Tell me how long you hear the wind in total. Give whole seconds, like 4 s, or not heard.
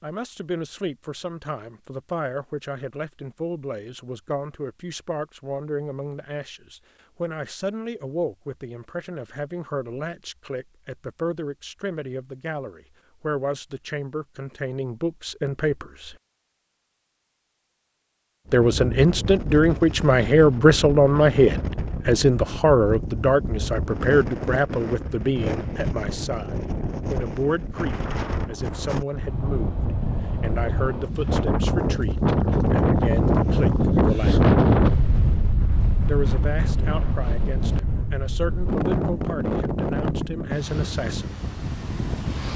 24 s.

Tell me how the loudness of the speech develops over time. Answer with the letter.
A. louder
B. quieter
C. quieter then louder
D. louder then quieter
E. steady
D.